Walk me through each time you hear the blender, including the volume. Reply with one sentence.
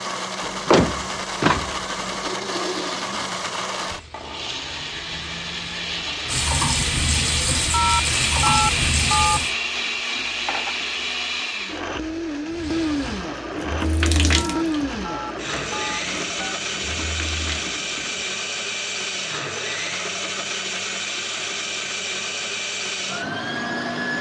The blender can be heard from 0.0 to 24.1 s, at a steady volume.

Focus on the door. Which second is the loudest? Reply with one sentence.
The volume of the door peaks at 1 second.